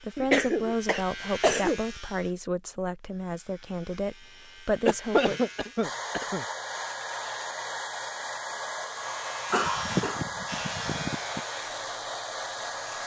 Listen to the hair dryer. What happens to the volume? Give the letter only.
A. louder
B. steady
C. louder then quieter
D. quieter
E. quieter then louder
B.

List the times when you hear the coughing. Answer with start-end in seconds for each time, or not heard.
0.1-1.8, 4.8-6.5, 9.5-11.4.